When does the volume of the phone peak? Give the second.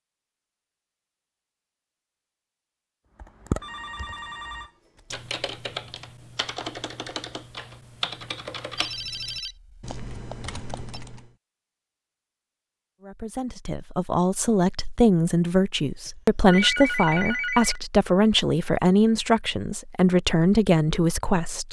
17 s.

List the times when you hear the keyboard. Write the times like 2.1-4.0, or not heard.
3.1-11.3.